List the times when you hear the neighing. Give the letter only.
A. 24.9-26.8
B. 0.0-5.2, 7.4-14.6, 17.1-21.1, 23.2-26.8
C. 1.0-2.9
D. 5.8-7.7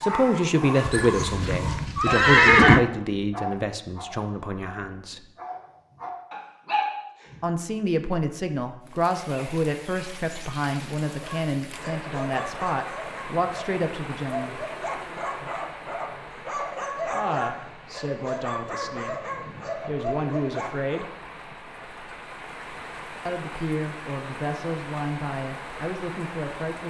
C.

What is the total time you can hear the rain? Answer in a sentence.
The rain can be heard for 18 seconds in total.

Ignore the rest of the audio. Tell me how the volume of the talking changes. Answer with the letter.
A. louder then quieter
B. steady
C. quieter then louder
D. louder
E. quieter
E.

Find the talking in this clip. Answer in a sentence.
You can hear the talking from 0.0 to 5.2 s, from 7.4 to 14.6 s, from 17.1 to 21.1 s and from 23.2 to 26.8 s.